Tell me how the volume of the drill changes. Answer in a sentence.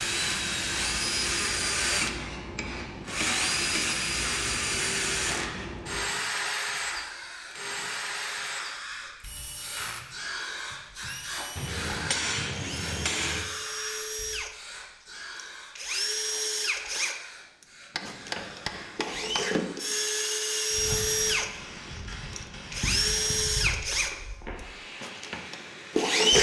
The loudness of the drill goes down, then up.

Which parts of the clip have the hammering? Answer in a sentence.
You can hear the hammering from 2.0 to 3.9 s, from 11.6 to 13.4 s and from 17.9 to 19.5 s.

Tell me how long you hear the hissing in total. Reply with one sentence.
You can hear the hissing for 26 seconds altogether.